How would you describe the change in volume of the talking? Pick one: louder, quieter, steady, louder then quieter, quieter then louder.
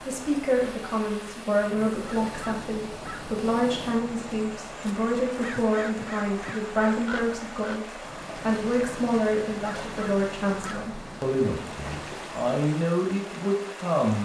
steady.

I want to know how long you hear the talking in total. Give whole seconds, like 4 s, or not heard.
14 s.